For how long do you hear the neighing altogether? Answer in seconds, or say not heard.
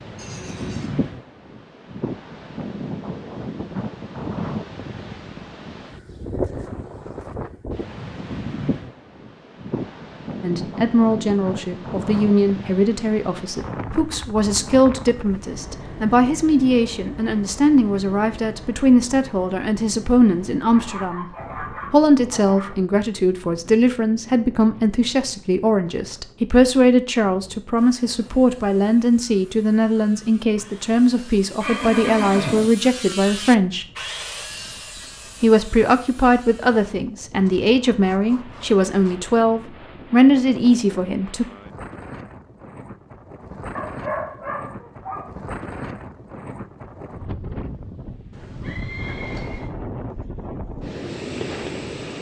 3 s.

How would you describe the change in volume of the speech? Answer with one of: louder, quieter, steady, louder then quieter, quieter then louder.
steady.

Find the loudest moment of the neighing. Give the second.
32 s.